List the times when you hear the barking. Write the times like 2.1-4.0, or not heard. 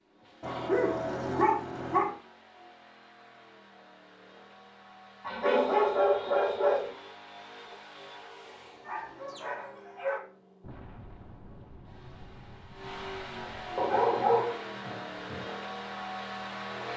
0.4-2.1, 5.2-6.9, 8.8-10.2, 13.8-15.4.